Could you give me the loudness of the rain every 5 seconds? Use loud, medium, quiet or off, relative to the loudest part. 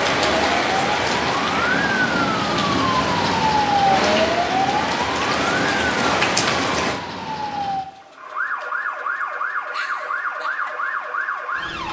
loud, loud, off.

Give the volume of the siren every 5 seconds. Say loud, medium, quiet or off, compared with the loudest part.
loud, medium, medium.